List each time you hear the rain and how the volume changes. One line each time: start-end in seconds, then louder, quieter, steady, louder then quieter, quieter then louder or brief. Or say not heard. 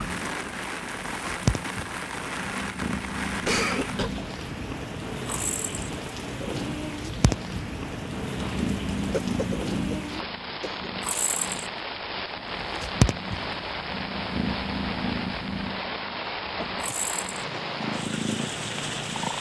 0.0-19.3 steady.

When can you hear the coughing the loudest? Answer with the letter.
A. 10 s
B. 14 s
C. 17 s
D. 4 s
D.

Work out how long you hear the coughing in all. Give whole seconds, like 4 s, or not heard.
3 s.